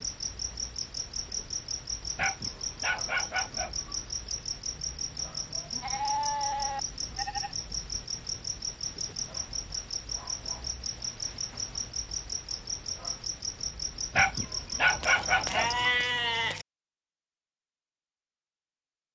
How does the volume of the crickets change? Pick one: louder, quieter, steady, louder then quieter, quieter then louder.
steady.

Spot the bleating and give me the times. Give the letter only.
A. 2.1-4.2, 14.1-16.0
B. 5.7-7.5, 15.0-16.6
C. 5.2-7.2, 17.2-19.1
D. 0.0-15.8
B.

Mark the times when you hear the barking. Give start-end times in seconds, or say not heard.
2.1-4.2, 14.1-16.0.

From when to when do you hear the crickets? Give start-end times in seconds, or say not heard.
0.0-15.8.